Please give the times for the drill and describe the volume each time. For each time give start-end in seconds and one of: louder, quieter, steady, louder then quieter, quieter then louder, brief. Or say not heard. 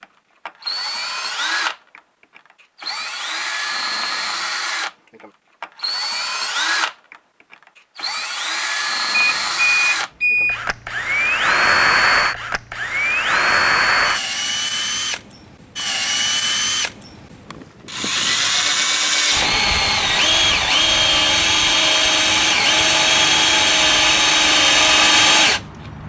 0.0-26.0 louder.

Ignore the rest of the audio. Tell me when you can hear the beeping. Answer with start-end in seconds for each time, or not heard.
9.1-10.6.